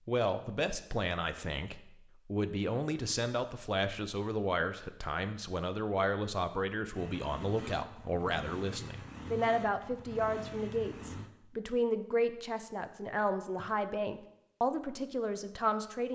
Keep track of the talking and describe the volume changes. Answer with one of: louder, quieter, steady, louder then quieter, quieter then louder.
steady.